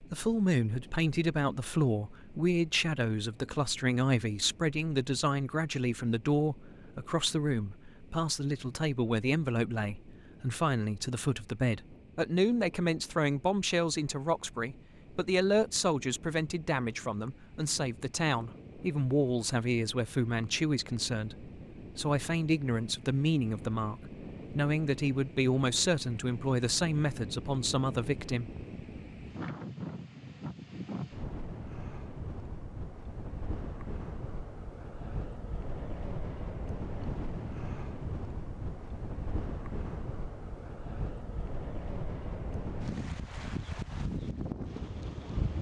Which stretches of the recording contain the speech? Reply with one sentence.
The speech can be heard from 0.0 to 28.5 s.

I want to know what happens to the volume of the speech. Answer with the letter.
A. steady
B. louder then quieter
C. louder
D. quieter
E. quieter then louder
A.